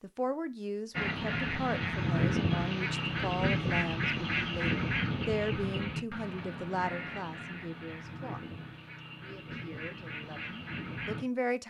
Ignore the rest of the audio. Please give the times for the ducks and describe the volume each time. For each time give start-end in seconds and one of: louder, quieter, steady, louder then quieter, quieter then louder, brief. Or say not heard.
0.9-11.2 quieter.